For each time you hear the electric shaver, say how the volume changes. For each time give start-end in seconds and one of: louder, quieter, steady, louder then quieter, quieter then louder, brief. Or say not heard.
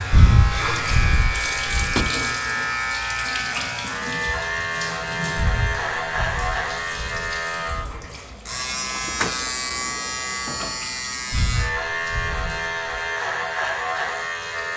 0.0-14.7 steady.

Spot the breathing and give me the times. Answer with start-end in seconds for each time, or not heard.
0.1-2.0, 5.3-8.0, 11.3-12.9.